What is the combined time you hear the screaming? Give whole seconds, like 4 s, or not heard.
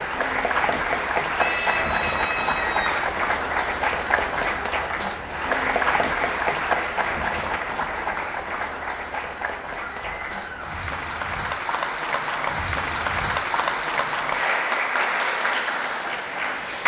3 s.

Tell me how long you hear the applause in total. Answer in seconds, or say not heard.
17 s.